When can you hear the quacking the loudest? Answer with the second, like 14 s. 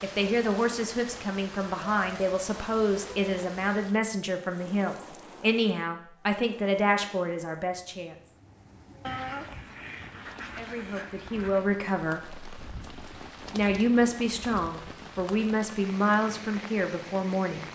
9 s.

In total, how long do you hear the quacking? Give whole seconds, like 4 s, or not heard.
3 s.